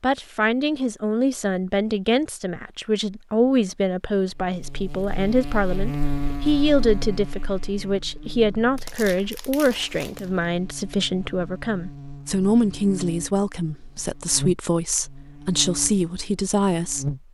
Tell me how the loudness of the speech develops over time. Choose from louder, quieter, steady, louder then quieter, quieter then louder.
steady.